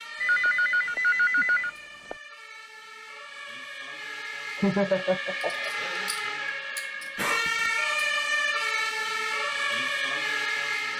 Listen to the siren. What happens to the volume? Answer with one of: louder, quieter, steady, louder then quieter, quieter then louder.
louder.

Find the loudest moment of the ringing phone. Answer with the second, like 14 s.
1 s.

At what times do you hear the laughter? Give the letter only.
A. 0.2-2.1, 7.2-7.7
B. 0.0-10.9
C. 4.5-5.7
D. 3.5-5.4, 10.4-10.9
C.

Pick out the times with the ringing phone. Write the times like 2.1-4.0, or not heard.
0.2-2.1, 7.2-7.7.